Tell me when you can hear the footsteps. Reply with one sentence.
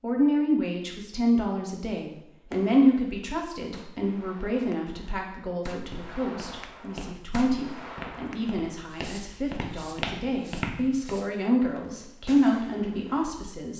The footsteps can be heard from 5.8 to 11.2 s.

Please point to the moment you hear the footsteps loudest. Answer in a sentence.
The loudest moment of the footsteps is at 11 seconds.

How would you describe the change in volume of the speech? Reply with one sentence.
The volume of the speech goes down, then up.